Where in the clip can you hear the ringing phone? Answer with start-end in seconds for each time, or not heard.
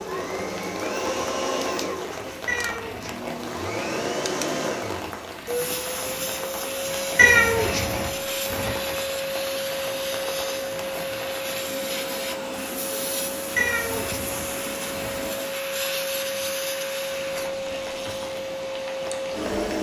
not heard.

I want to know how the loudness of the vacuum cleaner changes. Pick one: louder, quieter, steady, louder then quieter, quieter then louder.
steady.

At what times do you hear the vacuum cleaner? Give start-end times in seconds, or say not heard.
0.0-19.7.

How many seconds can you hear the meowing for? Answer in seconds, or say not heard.
4 s.